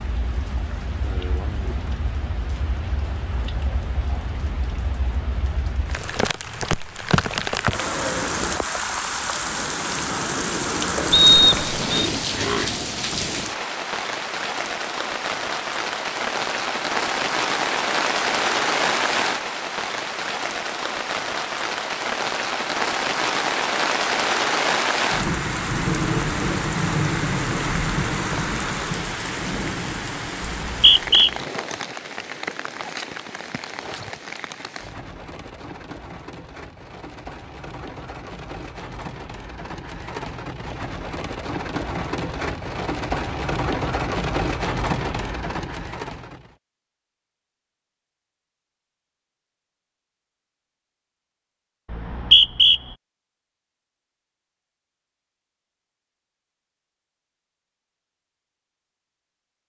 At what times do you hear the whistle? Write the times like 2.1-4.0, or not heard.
11.1-12.1, 30.4-31.3, 51.9-52.8.